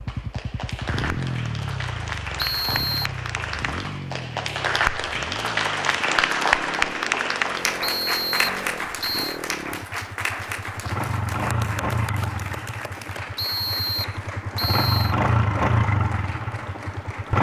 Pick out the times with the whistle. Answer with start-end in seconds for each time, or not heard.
2.4-3.1, 7.8-9.3, 13.3-15.2.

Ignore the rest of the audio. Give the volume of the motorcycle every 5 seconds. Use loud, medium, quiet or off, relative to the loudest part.
medium, quiet, medium, loud.